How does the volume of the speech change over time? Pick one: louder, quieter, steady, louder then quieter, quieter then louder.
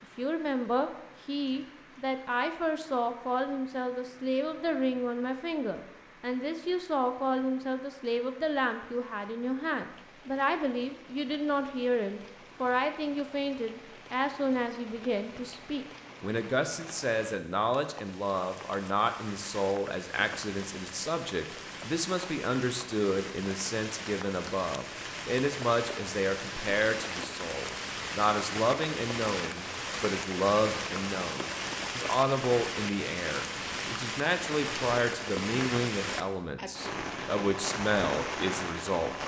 steady.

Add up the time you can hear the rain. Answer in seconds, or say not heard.
39 s.